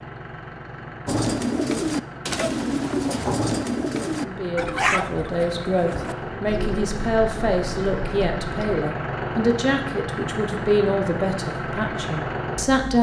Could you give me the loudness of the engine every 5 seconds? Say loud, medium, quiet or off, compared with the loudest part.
medium, loud, loud.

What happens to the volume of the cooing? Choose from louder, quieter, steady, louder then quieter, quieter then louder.
quieter.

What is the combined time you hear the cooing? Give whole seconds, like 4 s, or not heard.
8 s.